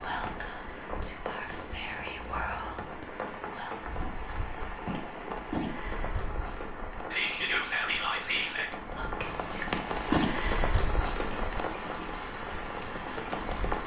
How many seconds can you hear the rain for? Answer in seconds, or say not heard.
14 s.